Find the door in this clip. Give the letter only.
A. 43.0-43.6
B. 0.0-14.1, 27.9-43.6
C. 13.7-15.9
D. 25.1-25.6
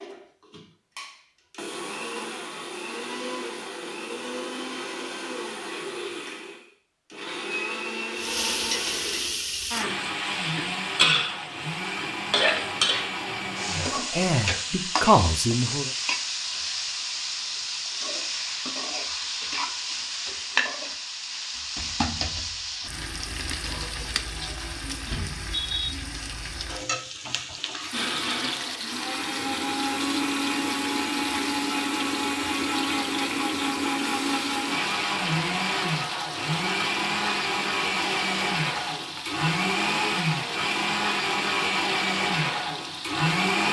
D.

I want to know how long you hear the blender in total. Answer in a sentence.
The blender can be heard for 30 seconds in total.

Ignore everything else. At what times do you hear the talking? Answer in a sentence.
The talking can be heard from 13.7 to 15.9 s.